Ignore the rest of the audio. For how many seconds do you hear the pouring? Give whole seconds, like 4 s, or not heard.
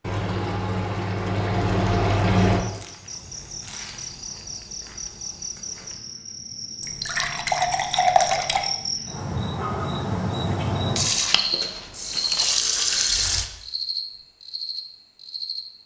7 s.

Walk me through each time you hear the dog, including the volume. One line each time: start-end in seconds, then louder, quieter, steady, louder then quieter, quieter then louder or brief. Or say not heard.
not heard.